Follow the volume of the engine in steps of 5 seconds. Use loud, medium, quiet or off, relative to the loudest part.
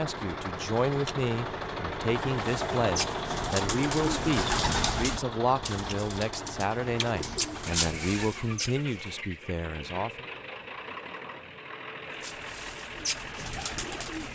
loud, medium, medium.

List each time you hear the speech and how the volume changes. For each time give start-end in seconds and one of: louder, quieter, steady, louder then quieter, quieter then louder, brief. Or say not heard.
0.0-10.2 steady.